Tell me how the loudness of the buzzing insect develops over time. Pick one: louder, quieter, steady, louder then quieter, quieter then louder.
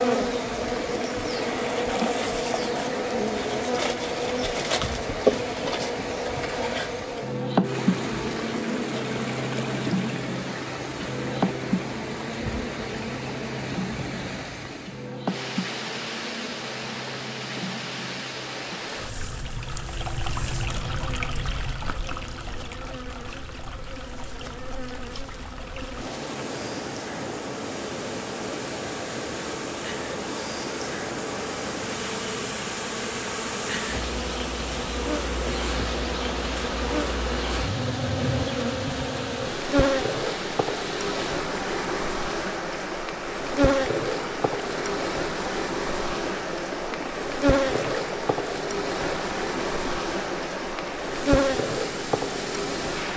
quieter then louder.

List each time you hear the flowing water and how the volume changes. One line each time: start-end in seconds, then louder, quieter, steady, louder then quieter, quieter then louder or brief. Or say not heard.
0.0-53.1 steady.